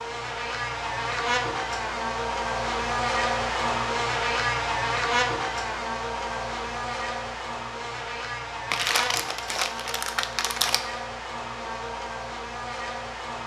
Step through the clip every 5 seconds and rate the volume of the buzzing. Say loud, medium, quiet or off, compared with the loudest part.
loud, loud, medium.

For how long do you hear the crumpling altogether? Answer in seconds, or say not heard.
2 s.